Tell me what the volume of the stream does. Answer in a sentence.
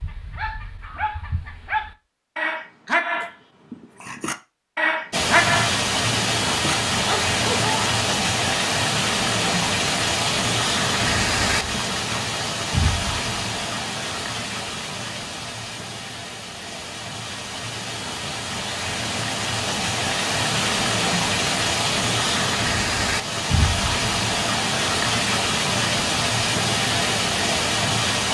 The volume of the stream goes down, then up.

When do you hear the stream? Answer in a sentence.
The stream can be heard from 5.1 to 28.2 s.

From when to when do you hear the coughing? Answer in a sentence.
The coughing can't be heard in this clip.